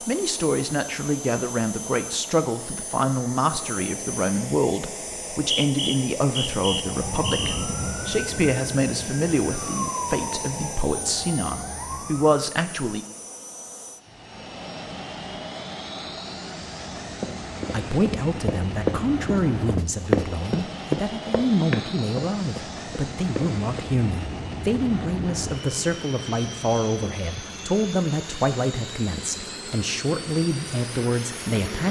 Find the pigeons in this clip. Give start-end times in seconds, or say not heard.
not heard.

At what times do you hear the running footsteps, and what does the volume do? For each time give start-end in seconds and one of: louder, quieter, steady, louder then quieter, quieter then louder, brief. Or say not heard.
17.2-23.9 louder then quieter.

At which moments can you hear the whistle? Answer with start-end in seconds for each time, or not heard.
5.1-7.7.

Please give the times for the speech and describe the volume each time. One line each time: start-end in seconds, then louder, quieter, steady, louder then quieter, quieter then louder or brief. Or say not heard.
0.0-13.1 steady
17.7-31.8 steady.